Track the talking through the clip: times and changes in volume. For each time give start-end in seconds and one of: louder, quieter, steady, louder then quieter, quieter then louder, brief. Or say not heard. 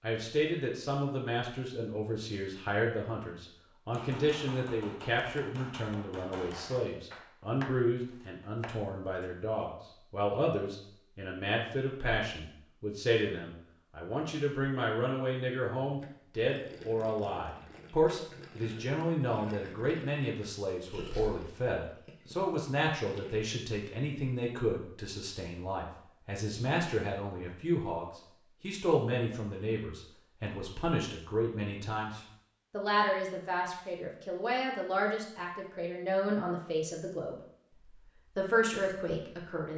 0.0-39.7 steady.